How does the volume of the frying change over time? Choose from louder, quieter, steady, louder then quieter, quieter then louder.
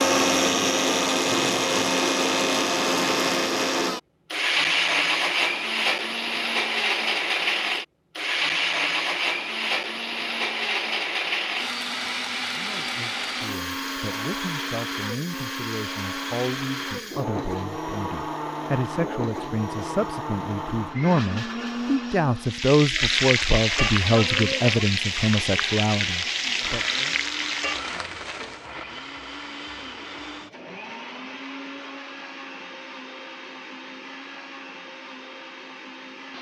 quieter.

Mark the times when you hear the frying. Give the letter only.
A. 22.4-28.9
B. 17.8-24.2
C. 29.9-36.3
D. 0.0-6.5
A.